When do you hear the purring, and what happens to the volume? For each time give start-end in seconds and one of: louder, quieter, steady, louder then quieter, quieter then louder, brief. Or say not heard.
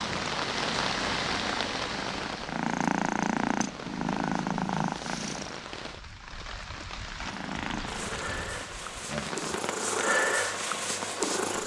0.0-5.6 louder
7.2-11.6 louder then quieter.